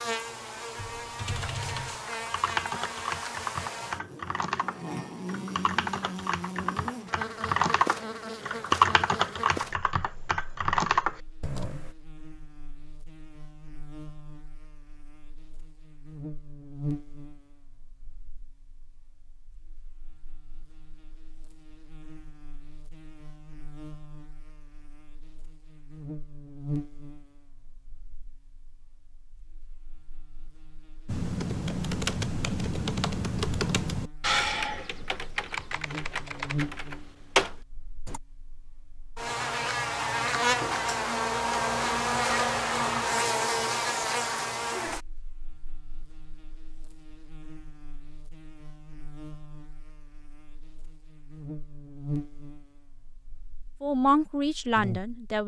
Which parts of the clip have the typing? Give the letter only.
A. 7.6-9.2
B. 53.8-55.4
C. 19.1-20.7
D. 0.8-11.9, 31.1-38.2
D.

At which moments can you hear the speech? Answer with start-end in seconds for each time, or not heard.
53.8-55.4.